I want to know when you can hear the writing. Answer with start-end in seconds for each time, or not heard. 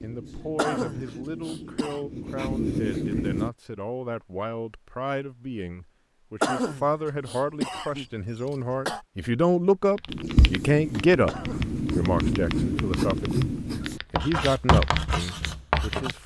0.0-3.5, 10.1-16.2.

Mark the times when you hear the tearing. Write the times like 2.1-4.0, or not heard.
not heard.